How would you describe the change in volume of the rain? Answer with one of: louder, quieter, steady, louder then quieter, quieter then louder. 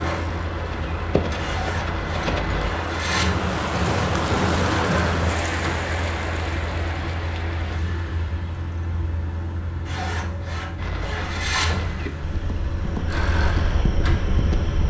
louder then quieter.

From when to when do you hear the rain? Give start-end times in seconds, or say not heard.
0.0-7.8.